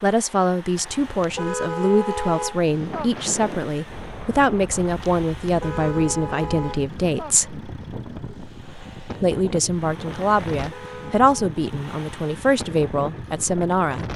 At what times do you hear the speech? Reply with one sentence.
You can hear the speech from 0.0 to 7.5 s and from 9.2 to 14.1 s.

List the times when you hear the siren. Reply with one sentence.
The siren can't be heard in this clip.